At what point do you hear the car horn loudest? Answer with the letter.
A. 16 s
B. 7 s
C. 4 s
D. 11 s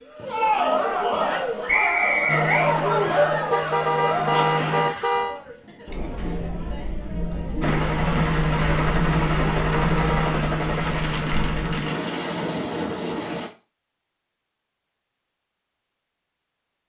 C.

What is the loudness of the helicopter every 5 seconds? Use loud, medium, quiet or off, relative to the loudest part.
medium, loud, loud, off.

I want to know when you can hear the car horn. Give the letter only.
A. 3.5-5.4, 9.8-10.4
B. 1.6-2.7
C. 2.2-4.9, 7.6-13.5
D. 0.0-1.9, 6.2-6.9
A.